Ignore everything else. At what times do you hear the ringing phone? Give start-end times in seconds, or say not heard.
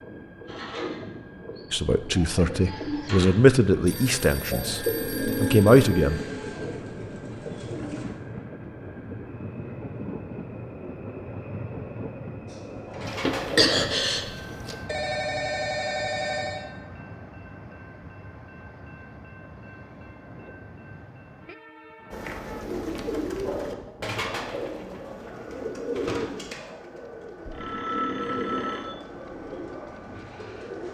3.7-6.1, 14.8-16.6, 27.4-28.9.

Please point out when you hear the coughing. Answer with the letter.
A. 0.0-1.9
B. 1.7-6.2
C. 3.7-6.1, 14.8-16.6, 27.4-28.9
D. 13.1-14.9
D.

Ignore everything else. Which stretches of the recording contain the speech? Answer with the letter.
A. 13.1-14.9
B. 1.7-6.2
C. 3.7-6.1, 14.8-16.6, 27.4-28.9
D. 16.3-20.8
B.